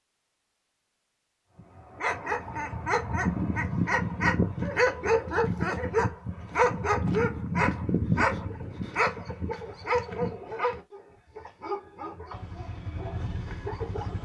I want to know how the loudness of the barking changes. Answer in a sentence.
The loudness of the barking goes down.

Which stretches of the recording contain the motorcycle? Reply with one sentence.
The motorcycle can be heard from 12.2 to 14.2 s.